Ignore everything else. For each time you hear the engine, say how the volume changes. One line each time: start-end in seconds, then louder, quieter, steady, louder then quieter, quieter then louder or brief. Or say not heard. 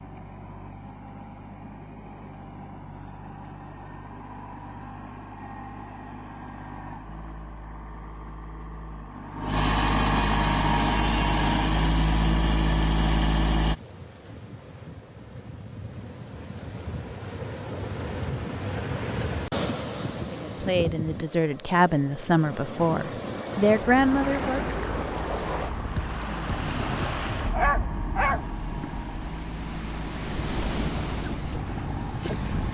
0.0-13.8 louder
24.0-32.7 steady.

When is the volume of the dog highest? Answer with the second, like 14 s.
28 s.